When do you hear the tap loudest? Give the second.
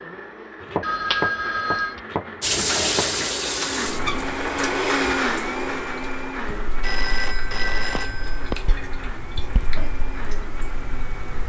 3 s.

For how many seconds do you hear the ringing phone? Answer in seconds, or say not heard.
3 s.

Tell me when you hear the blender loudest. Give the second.
5 s.